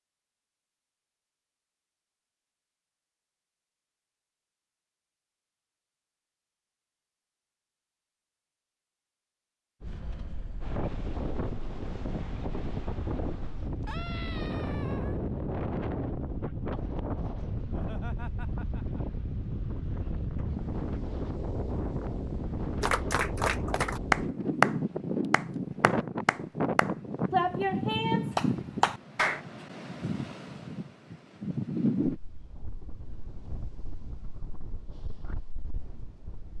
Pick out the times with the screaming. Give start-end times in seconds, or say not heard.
13.8-15.2.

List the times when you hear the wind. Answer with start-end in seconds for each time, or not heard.
9.8-36.5.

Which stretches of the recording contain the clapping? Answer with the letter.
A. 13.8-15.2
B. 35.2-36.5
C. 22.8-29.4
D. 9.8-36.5
C.